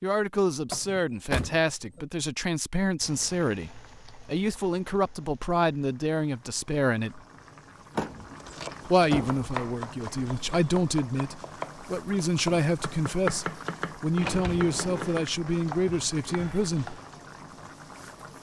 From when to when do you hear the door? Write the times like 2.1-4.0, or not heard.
0.7-2.0, 8.0-9.4, 14.2-15.2.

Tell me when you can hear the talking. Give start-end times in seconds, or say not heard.
0.0-7.2, 8.8-17.0.